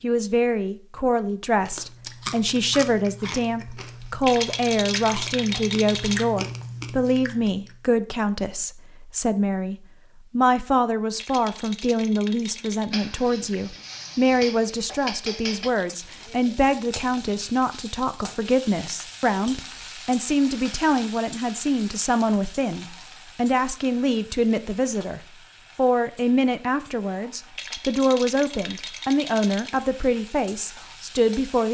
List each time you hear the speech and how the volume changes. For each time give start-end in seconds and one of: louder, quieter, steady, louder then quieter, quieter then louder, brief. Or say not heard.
0.0-31.6 steady.